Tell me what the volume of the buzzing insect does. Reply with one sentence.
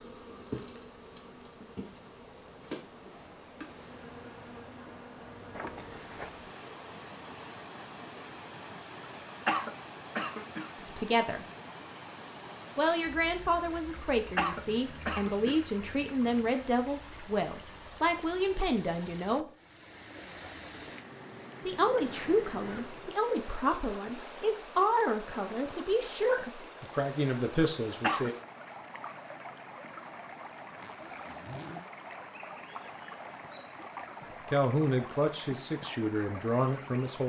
The volume of the buzzing insect goes down.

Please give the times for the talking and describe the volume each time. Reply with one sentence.
You can hear the talking briefly from 10.8 to 11.4 s; from 12.8 to 19.4 s, at a steady volume; from 21.6 to 28.4 s, at a steady volume; and briefly from 34.5 to 37.2 s.